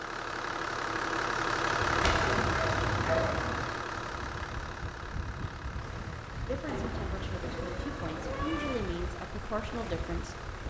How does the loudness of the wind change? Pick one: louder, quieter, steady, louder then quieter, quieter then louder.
steady.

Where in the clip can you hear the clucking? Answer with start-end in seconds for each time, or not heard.
not heard.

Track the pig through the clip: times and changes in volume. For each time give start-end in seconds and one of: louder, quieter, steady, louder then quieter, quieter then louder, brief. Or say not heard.
not heard.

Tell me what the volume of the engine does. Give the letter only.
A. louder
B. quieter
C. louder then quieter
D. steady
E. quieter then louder
B.